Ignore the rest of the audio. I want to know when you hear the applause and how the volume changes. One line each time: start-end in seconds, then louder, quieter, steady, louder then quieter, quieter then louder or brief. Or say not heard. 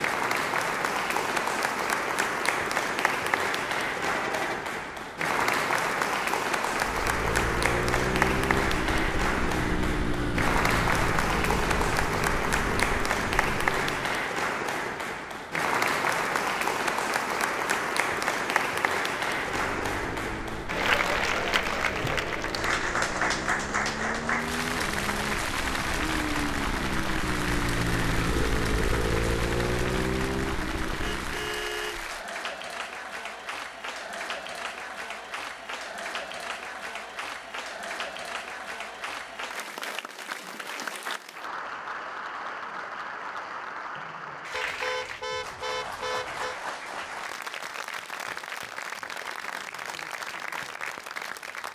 0.0-51.7 quieter.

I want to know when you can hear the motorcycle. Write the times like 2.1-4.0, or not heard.
6.8-14.2, 19.4-31.6.